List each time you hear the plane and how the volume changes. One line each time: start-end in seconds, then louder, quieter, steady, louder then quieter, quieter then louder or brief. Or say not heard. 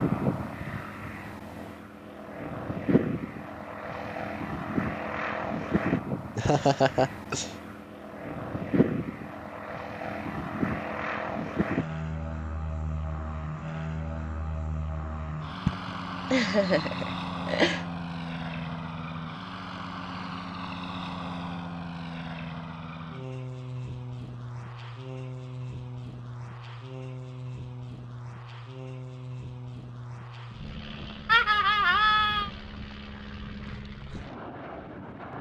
0.0-35.3 quieter.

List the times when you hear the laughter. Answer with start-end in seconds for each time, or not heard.
6.3-7.5, 15.7-17.9, 31.2-32.5.